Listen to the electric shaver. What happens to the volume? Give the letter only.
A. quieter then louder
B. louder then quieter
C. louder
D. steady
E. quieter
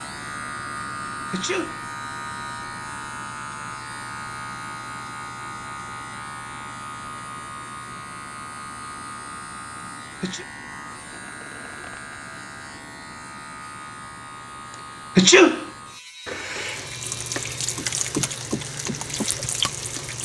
E.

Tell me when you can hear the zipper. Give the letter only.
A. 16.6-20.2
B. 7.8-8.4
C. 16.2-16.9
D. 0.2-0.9
C.